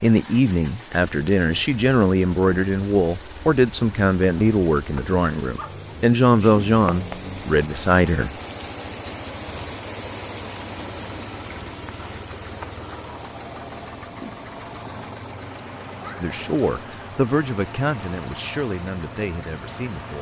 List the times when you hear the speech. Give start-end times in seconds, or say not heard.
0.0-8.3, 16.2-20.1.